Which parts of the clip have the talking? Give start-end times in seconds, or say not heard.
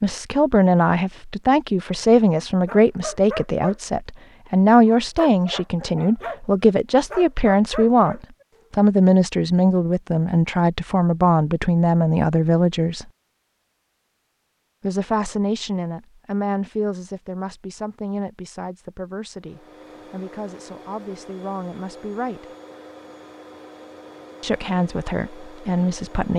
0.0-13.1, 14.8-22.4, 24.4-26.3.